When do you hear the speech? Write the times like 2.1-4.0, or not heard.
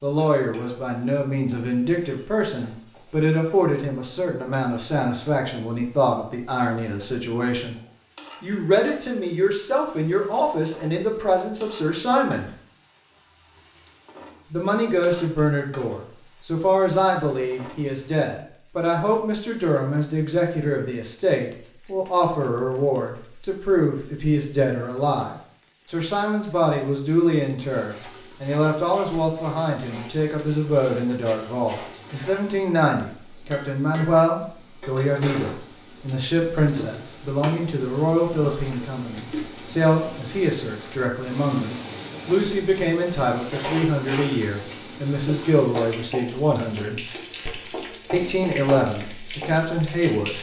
0.0-7.8, 8.4-12.5, 14.5-47.0, 48.1-50.3.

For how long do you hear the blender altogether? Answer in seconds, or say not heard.
not heard.